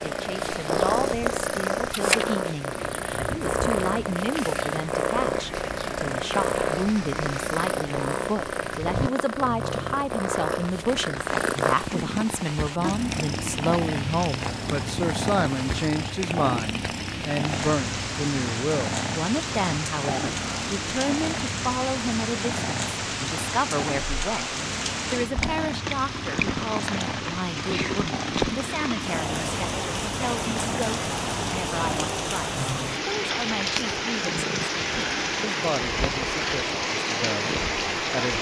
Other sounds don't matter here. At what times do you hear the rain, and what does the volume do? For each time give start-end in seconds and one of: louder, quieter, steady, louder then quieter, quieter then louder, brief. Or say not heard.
0.0-38.3 louder.